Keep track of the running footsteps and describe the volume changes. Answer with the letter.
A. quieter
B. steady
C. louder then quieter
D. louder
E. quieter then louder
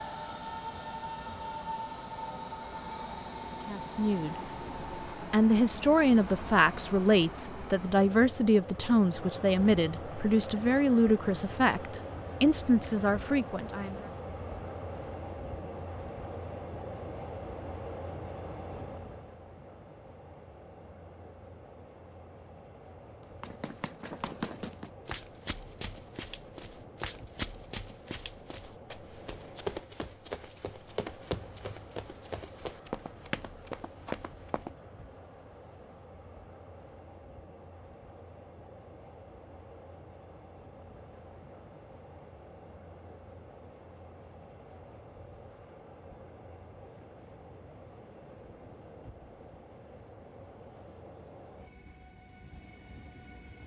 B.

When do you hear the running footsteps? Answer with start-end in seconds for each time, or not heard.
23.2-34.8.